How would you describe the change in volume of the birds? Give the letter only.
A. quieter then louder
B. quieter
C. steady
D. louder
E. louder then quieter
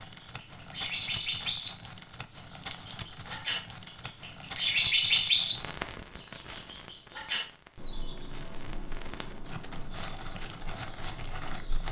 E.